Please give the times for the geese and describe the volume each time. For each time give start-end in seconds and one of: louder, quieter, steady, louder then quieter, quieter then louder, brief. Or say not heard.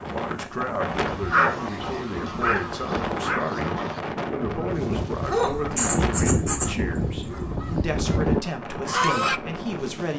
1.1-9.4 louder.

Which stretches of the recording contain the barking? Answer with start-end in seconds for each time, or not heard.
0.9-3.5, 5.2-7.8.